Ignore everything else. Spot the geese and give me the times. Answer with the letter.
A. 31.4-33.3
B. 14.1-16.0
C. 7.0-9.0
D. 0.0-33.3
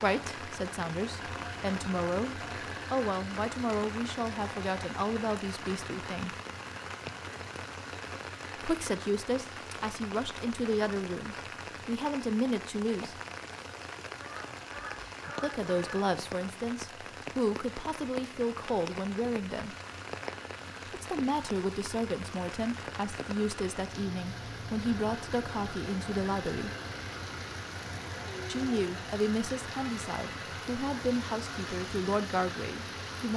B.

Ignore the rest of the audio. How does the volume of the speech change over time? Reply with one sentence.
The volume of the speech stays about the same.